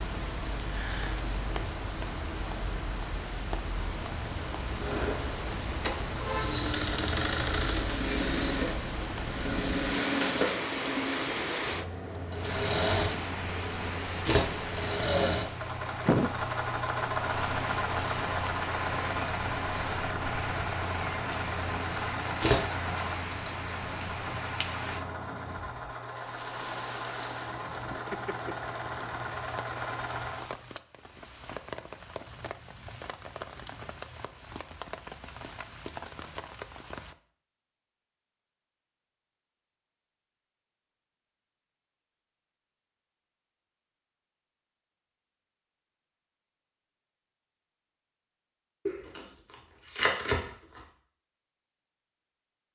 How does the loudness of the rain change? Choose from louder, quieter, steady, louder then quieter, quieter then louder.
quieter.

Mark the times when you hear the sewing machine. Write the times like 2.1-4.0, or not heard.
4.8-30.5.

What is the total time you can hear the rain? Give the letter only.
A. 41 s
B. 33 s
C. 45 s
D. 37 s
D.